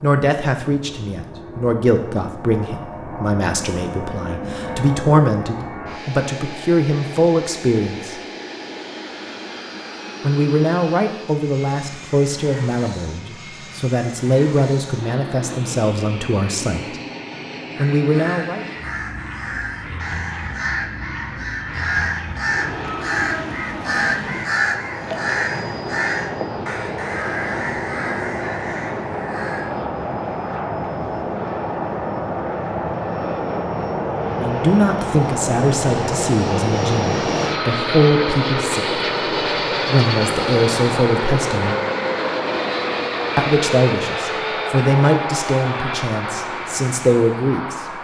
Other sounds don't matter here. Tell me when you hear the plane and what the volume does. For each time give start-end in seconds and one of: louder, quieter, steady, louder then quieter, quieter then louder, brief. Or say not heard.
0.0-48.0 louder.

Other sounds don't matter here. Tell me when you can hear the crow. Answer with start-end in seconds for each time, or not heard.
17.7-29.6.